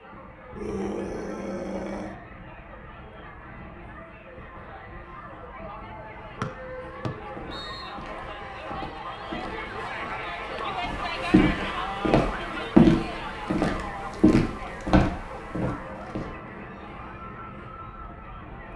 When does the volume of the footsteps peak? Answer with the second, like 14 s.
13 s.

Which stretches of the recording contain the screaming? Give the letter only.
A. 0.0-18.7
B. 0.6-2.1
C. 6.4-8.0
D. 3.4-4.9
B.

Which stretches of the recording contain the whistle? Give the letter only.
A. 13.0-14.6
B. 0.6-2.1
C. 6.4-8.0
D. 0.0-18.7
C.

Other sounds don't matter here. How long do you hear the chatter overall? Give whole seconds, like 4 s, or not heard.
19 s.